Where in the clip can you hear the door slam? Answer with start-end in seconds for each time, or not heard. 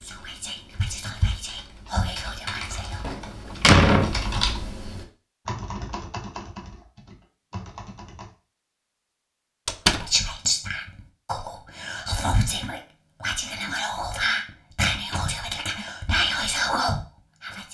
3.0-4.2, 9.7-10.1, 14.9-15.3.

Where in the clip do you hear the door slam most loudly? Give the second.
4 s.